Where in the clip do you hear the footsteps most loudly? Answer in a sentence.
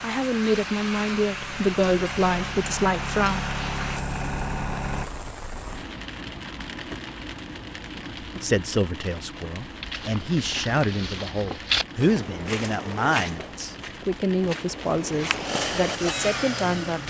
The volume of the footsteps peaks at 12 seconds.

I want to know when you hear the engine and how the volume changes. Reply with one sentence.
You can hear the engine from 0.0 to 5.0 s, getting louder; and briefly from 15.4 to 17.0 s.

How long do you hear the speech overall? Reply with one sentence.
You can hear the speech for 12 seconds altogether.